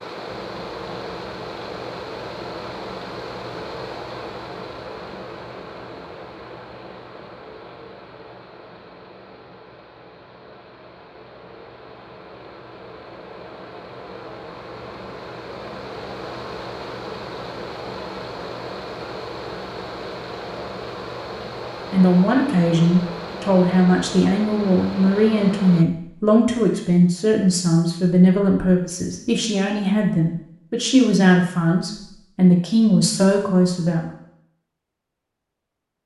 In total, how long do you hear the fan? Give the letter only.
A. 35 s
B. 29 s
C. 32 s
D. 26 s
D.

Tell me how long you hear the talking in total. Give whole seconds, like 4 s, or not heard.
12 s.